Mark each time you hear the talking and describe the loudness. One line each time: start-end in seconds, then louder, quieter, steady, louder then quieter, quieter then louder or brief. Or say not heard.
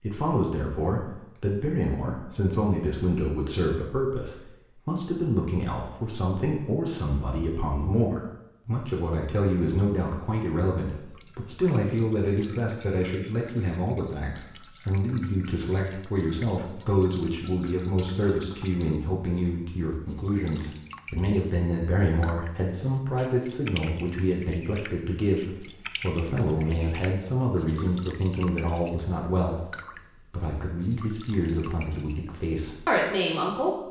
0.0-33.8 steady.